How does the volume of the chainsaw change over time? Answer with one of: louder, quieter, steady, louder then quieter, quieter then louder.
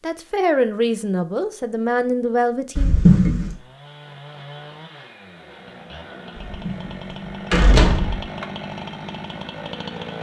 louder.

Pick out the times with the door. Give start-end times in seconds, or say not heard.
2.8-3.5, 6.5-8.2.